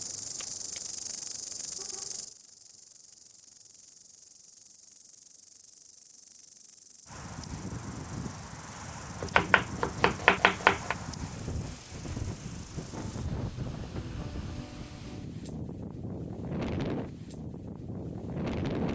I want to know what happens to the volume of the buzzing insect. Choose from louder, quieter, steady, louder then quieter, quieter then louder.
quieter.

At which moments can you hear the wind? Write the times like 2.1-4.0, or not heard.
7.0-18.8.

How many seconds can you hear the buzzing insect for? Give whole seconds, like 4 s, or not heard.
13 s.